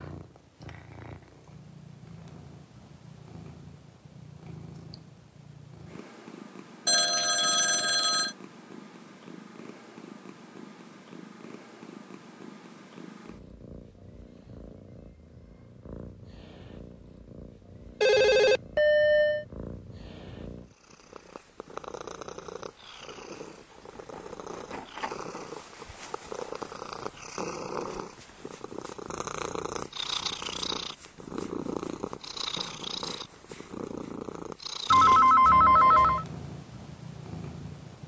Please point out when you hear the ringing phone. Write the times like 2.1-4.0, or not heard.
6.8-8.3, 18.0-19.4, 34.9-36.2.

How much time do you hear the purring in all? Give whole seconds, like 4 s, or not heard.
38 s.